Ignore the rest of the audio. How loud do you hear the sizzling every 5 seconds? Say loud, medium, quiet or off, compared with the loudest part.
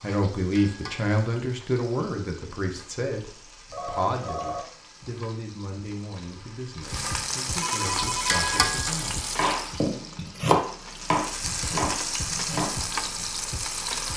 quiet, loud, loud.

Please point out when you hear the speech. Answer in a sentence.
You can hear the speech from 0.0 to 10.2 s.